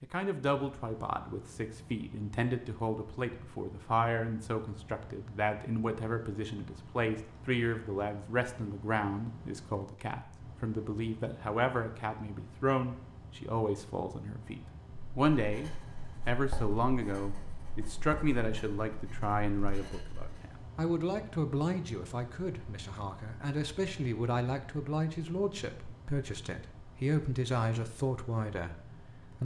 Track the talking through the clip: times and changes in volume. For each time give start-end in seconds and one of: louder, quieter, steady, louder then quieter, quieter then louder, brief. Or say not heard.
0.0-29.3 steady.